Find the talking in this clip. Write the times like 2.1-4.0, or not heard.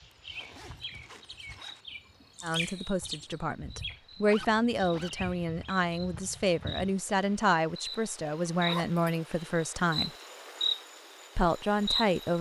2.4-10.1, 11.3-12.3.